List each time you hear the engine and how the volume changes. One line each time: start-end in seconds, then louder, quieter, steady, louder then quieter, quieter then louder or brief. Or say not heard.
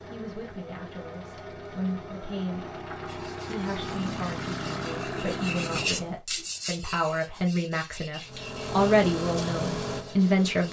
0.0-6.2 louder
8.2-10.6 brief.